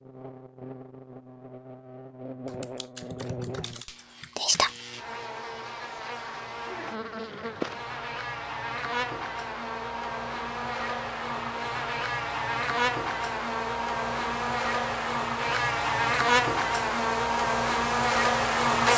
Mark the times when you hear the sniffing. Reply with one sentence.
The sniffing can't be heard in this clip.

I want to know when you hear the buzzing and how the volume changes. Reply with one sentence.
The buzzing can be heard from 0.0 to 18.9 s, getting louder.